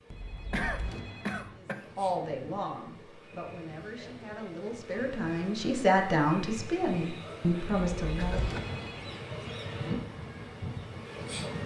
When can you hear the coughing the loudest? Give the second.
1 s.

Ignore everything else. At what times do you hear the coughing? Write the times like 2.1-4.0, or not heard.
0.5-1.9, 8.2-8.8.